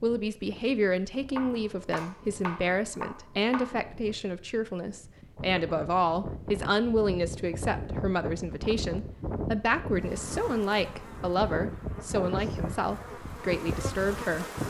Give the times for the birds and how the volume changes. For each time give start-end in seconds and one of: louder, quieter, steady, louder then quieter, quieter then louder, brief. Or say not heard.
not heard.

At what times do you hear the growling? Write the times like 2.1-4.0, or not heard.
not heard.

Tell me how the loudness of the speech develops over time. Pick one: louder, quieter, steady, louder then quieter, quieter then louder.
steady.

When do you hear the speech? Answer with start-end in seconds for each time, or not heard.
0.0-14.4.